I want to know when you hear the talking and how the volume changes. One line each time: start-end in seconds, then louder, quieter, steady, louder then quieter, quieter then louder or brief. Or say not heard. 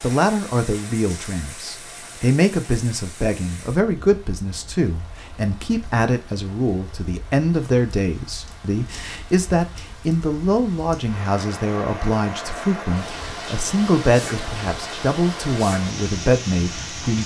0.0-17.2 steady.